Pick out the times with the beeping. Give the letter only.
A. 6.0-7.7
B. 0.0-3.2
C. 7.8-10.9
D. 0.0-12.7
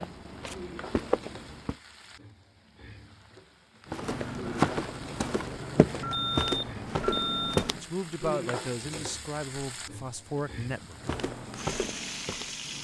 A.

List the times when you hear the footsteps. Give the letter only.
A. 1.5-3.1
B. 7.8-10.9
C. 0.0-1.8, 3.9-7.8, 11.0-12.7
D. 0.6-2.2
C.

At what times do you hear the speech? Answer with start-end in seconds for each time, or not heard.
7.8-10.9.